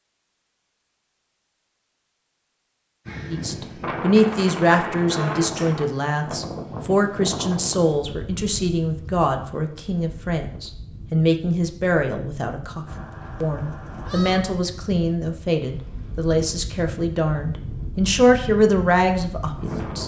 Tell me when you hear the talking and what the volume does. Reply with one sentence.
You can hear the talking from 3.3 to 20.0 s, at a steady volume.